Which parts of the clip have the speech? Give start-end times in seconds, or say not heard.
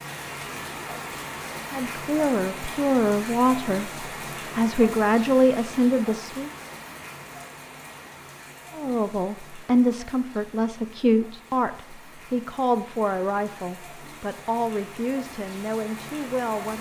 1.7-6.5, 8.8-16.7.